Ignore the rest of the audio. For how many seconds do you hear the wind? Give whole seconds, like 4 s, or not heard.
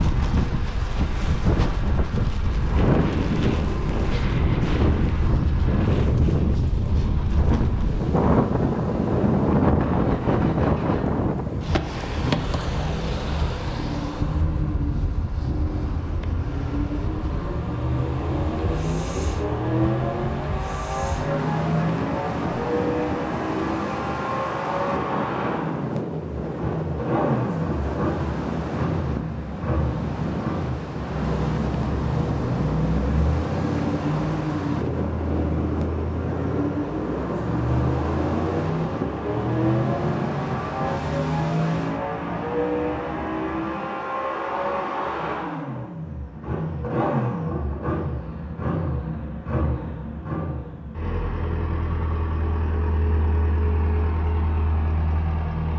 42 s.